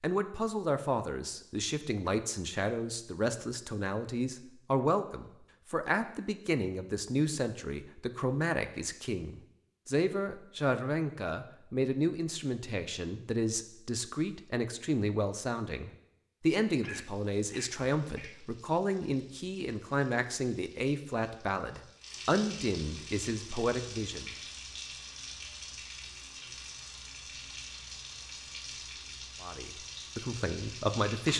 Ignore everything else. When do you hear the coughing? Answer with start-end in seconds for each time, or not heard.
16.8-18.4.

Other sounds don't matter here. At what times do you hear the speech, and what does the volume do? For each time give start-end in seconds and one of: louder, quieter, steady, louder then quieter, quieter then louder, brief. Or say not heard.
0.0-24.4 steady
29.4-31.3 brief.